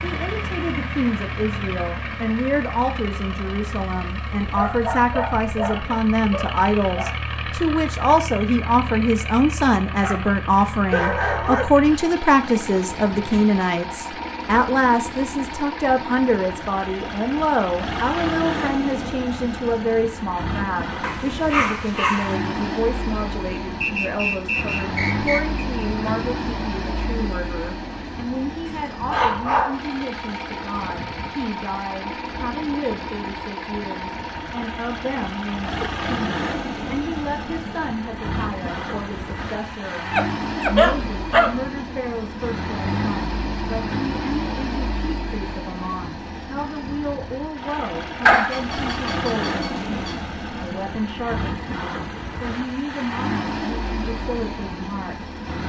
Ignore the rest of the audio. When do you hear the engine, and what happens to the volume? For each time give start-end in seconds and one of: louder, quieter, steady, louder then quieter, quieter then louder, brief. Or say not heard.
0.0-55.6 steady.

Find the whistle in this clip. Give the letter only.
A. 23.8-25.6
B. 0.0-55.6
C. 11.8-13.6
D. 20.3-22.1
A.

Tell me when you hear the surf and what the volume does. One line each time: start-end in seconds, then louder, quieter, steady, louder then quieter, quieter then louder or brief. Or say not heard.
not heard.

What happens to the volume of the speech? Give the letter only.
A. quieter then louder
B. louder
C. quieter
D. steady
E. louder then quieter
C.